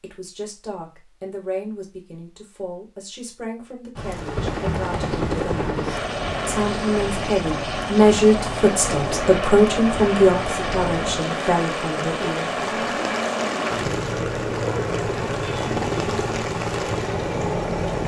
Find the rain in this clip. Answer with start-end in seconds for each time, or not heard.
4.0-18.0.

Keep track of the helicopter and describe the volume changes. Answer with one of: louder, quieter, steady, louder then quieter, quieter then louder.
steady.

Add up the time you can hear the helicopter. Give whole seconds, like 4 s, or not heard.
14 s.